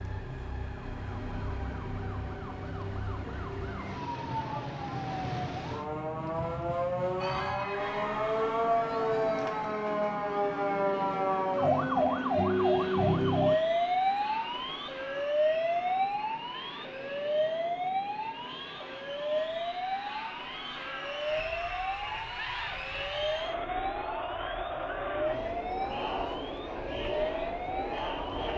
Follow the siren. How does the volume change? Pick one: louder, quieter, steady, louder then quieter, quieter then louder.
louder then quieter.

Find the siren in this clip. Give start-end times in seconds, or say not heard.
0.0-28.5.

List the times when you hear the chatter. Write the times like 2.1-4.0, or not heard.
7.2-28.5.